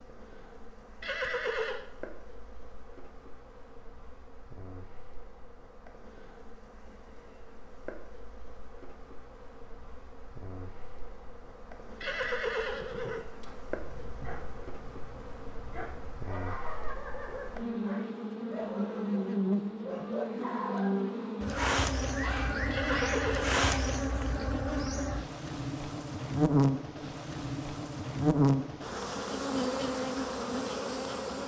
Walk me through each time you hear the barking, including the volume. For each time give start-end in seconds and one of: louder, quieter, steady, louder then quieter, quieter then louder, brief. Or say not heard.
13.7-23.8 louder.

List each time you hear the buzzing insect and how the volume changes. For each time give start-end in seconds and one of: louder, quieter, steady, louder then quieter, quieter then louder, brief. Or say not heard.
0.0-31.4 louder.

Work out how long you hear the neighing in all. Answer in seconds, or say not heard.
3 s.